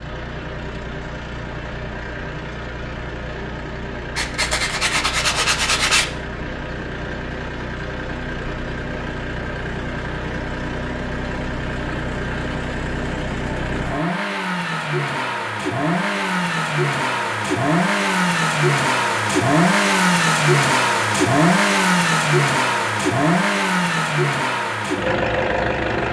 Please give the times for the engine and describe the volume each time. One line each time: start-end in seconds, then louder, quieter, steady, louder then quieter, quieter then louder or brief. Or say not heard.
0.0-26.0 louder.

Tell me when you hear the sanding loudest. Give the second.
6 s.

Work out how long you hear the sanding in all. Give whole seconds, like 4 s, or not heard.
2 s.